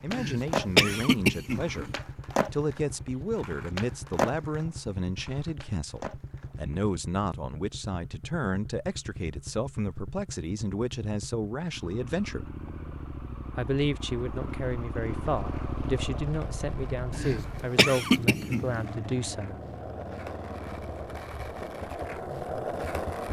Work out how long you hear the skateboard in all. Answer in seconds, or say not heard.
15 s.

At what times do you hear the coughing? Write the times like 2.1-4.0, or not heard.
0.1-1.9, 17.1-18.9.